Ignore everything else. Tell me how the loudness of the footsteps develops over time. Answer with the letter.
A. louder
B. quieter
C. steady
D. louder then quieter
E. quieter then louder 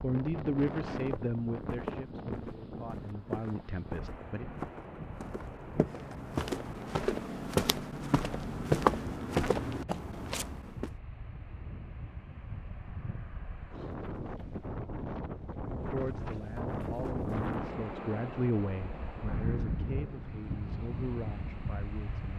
A.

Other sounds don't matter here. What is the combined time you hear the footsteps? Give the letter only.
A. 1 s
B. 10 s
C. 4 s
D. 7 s
B.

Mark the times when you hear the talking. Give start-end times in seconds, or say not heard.
0.0-4.5, 15.8-22.3.